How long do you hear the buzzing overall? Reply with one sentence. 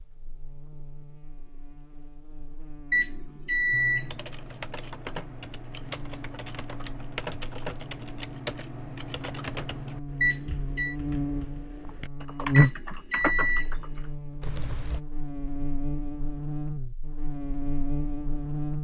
You can hear the buzzing for 19 seconds altogether.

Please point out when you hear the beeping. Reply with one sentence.
The beeping can be heard from 2.9 to 4.1 s, from 10.2 to 10.9 s and from 12.5 to 13.7 s.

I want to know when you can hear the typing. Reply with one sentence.
You can hear the typing from 3.7 to 15.0 s.